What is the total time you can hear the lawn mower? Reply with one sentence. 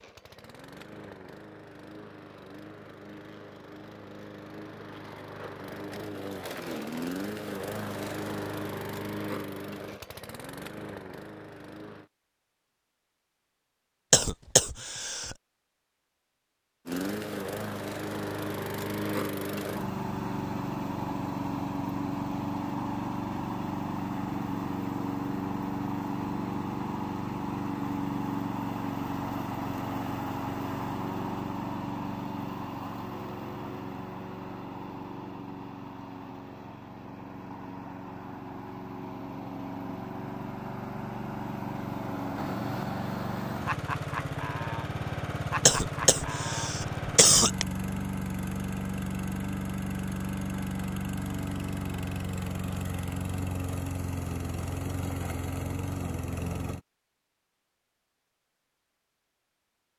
You can hear the lawn mower for 52 seconds altogether.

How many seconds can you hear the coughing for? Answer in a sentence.
The coughing can be heard for 3 seconds in total.